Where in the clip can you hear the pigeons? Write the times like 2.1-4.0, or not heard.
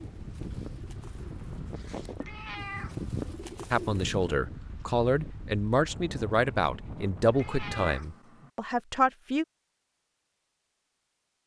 0.0-4.3.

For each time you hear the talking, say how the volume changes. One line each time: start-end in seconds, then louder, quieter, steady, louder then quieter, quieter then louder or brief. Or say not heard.
3.7-9.4 steady.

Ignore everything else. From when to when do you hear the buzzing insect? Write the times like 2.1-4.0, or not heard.
not heard.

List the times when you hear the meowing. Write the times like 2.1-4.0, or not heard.
2.2-3.4, 7.3-8.5.